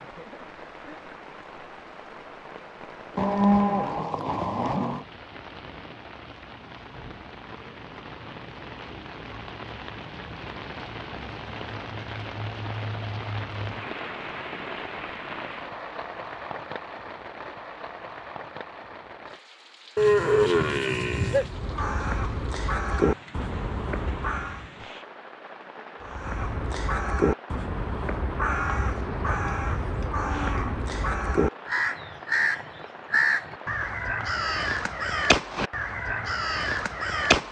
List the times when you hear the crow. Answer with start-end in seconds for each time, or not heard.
21.3-24.6, 26.0-37.4.